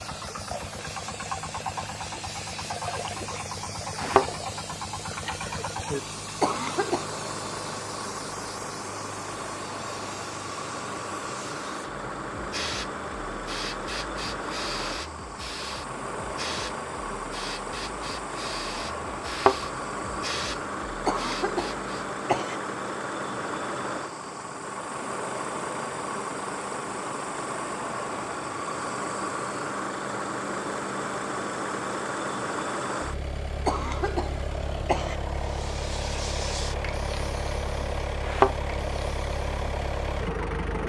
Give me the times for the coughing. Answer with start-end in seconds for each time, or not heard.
6.4-7.0, 21.1-22.6, 33.6-35.1.